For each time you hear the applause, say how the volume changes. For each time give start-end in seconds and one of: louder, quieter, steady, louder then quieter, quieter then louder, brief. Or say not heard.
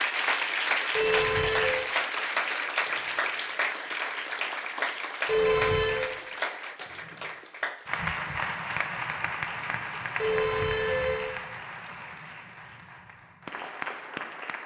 0.0-14.6 quieter.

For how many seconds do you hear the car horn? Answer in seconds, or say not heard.
3 s.